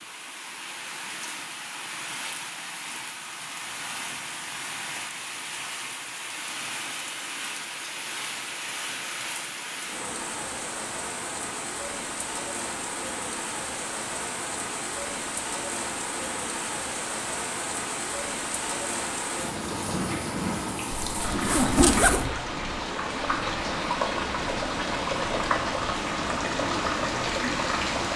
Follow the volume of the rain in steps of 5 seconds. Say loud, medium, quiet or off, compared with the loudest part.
medium, medium, medium, medium, loud, loud.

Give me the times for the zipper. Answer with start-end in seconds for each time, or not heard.
20.9-22.2.